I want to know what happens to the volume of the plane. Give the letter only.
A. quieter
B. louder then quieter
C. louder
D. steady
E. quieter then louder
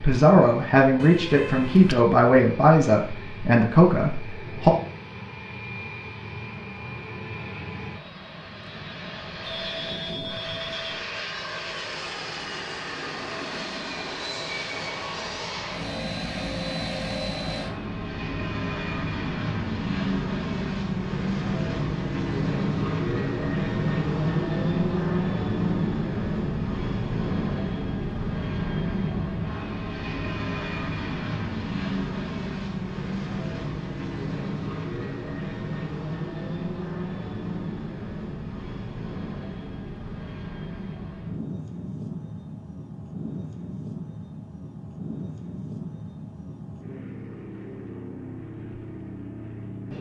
B.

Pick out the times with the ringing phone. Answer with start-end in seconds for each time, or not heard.
9.4-11.1.